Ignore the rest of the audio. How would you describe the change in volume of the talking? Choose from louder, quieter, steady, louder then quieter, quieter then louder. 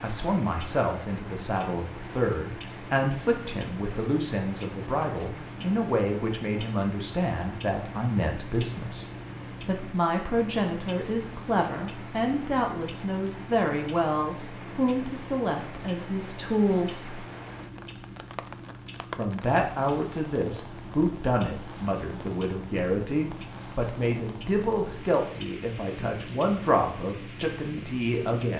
steady.